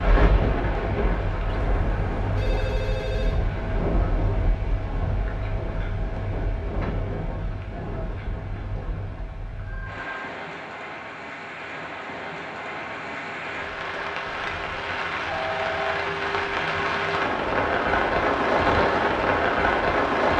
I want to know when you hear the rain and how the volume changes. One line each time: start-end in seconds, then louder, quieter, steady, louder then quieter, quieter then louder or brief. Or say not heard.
0.0-20.3 quieter then louder.